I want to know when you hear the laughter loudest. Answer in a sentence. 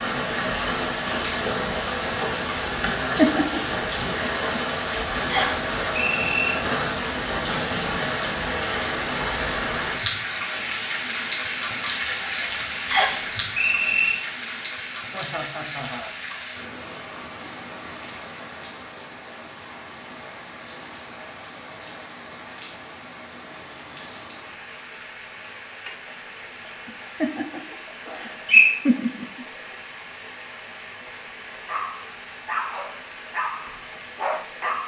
The volume of the laughter peaks at 3 seconds.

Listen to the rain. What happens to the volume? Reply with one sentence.
The loudness of the rain goes down.